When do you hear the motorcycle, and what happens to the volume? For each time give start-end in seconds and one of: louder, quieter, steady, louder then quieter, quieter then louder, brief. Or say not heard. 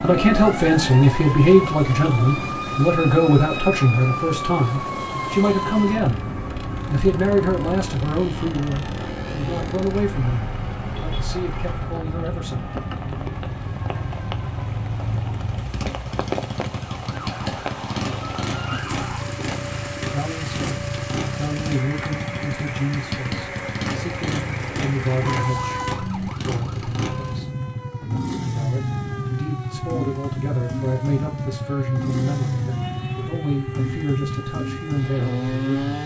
0.0-36.0 louder.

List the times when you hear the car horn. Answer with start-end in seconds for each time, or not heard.
10.9-11.3, 25.2-26.3.